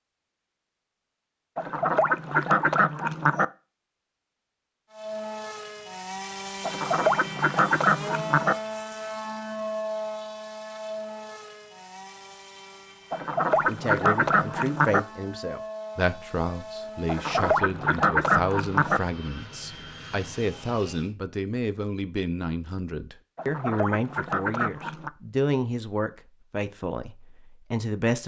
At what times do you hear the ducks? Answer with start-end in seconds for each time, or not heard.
1.6-3.5, 6.7-8.6, 13.1-15.0, 17.1-19.0, 23.4-25.1.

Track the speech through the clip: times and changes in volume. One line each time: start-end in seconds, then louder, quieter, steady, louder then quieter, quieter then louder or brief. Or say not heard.
13.7-28.2 steady.